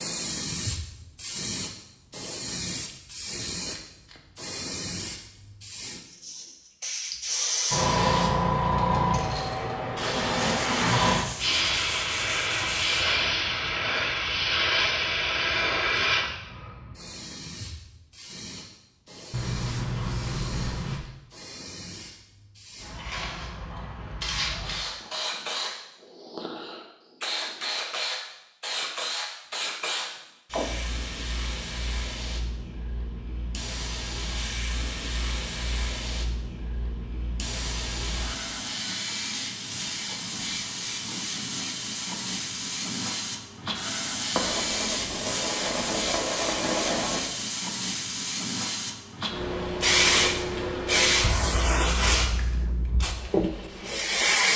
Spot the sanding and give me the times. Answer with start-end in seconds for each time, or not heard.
10.3-13.1, 19.3-21.0, 44.4-47.2.